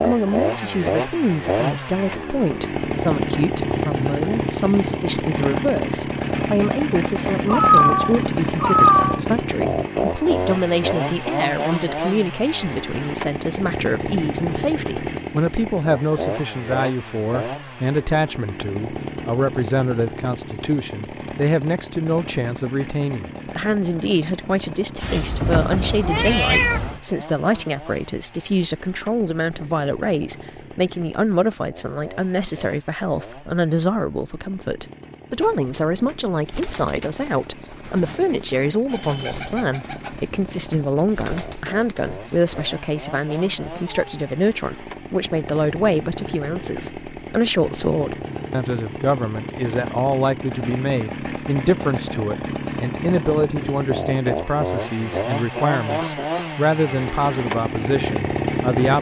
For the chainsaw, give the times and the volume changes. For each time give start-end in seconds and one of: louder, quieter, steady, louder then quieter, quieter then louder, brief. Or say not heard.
0.0-58.9 quieter then louder.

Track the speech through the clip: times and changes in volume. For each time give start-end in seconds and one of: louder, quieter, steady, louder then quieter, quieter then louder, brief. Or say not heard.
0.0-58.9 steady.